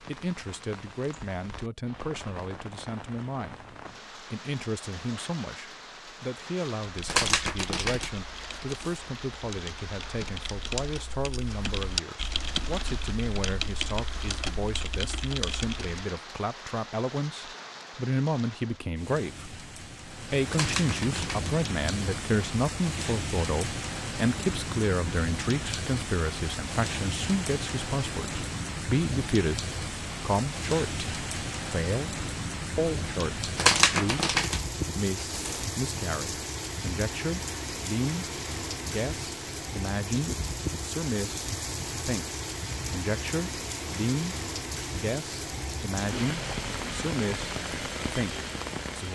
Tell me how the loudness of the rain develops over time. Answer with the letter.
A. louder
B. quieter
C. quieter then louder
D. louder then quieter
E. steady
A.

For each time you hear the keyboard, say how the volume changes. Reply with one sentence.
The keyboard can be heard from 6.8 to 16.1 s, getting louder.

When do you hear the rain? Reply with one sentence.
The rain can be heard from 0.0 to 49.0 s.